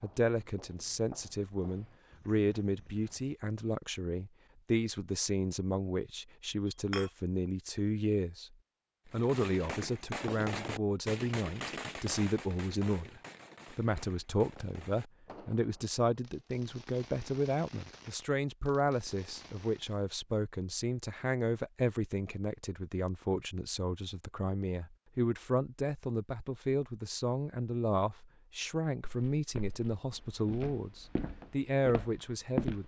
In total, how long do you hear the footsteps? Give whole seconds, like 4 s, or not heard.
7 s.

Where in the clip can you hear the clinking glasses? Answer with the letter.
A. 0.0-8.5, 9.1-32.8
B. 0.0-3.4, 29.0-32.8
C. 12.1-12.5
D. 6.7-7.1
D.